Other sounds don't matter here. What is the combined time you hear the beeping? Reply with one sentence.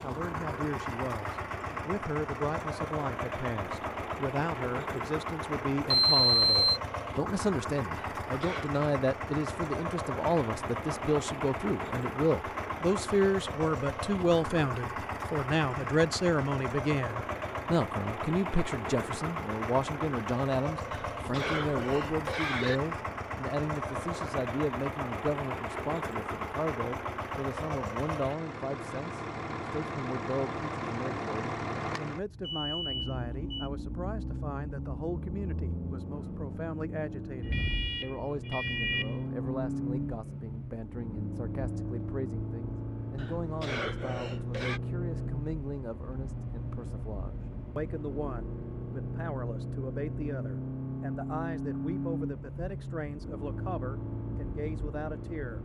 The beeping can be heard for 4 seconds in total.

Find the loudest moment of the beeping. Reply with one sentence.
The volume of the beeping peaks at 6 seconds.